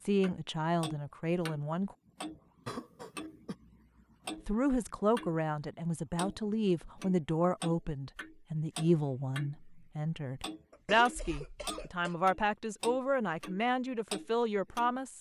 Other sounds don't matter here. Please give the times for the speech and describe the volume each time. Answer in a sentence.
You can hear the speech briefly from 0.0 to 1.9 s; and from 4.5 to 15.1 s, at a steady volume.